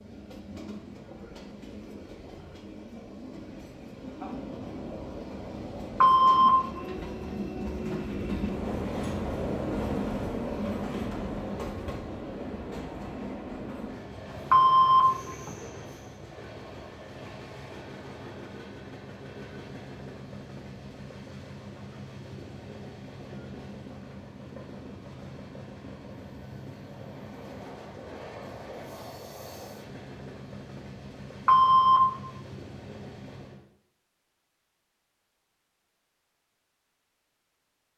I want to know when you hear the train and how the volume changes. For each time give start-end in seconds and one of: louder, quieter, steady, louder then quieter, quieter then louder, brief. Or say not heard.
0.0-33.6 louder then quieter.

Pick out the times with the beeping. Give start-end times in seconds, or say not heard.
6.0-6.6, 14.5-15.5, 31.4-32.0.